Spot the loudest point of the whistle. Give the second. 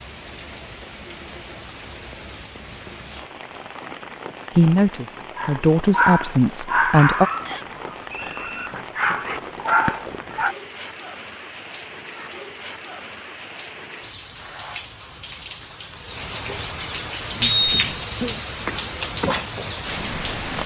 18 s.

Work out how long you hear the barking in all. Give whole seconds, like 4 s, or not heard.
5 s.